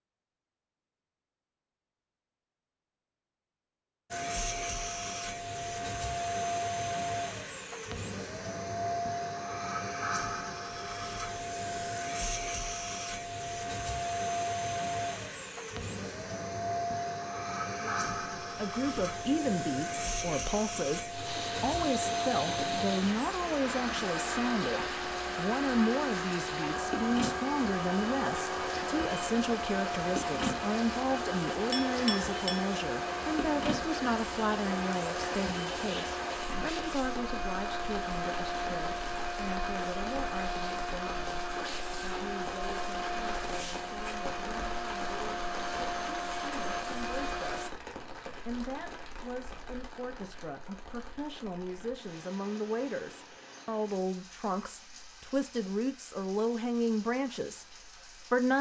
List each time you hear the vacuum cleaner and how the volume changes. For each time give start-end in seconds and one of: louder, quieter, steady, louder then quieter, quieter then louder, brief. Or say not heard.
4.1-47.7 steady.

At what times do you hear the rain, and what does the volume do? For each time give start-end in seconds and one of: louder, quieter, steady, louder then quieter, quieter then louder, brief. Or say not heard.
21.1-58.5 quieter.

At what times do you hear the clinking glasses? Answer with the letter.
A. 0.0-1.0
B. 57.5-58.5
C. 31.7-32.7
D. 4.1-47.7
C.